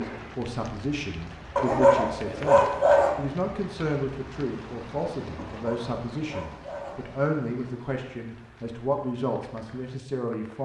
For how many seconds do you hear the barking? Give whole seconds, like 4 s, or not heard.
3 s.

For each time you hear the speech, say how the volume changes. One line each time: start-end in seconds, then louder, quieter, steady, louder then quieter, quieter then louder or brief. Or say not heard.
0.0-10.5 steady.